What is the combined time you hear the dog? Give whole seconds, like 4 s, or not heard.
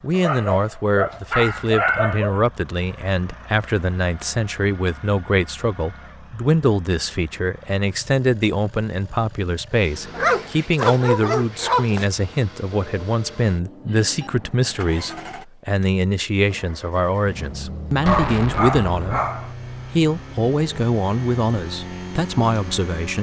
6 s.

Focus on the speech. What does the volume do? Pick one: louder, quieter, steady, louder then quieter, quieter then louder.
steady.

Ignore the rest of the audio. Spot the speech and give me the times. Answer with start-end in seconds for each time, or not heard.
0.0-19.2, 19.9-23.1.